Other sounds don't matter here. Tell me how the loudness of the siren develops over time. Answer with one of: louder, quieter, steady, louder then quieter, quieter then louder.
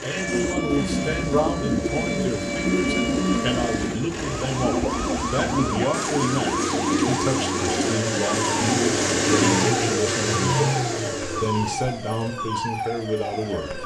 steady.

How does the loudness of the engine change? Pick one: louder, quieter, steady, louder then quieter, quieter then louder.
louder then quieter.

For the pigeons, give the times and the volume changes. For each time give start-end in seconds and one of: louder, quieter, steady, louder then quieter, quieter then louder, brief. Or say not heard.
0.1-9.6 steady.